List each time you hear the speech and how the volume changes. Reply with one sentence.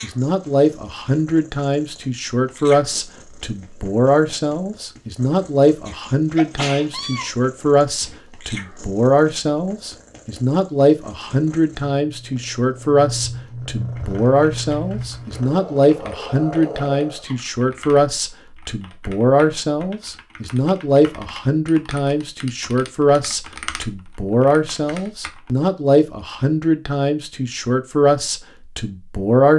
You can hear the speech from 0.0 to 29.5 s, at a steady volume.